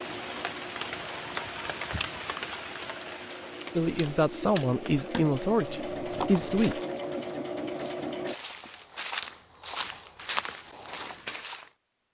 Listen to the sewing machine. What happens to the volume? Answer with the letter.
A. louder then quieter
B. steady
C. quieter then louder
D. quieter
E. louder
E.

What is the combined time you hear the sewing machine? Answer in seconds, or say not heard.
8 s.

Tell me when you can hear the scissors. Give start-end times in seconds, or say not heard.
3.9-5.3.